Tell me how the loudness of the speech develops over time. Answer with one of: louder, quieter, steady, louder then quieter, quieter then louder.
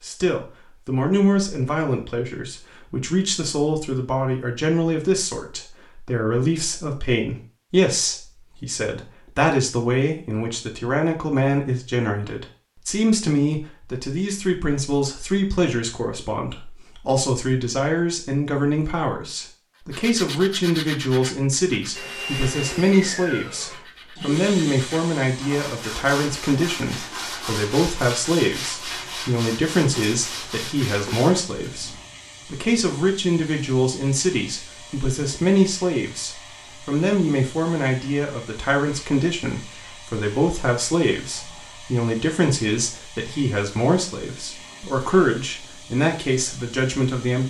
steady.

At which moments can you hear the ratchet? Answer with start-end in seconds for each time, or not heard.
not heard.